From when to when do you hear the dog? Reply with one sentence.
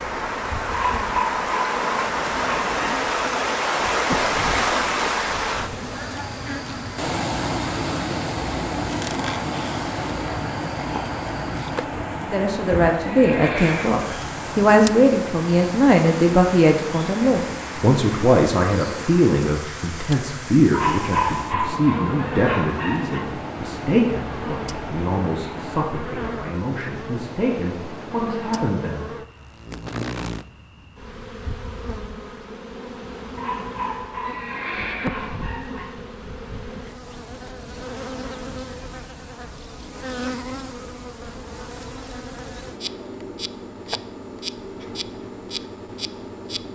The dog can be heard from 0.7 to 3.0 s, from 20.7 to 23.2 s and from 33.4 to 35.9 s.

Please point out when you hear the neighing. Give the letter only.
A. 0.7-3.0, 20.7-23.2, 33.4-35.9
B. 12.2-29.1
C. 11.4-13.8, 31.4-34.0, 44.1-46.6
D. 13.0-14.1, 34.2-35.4
D.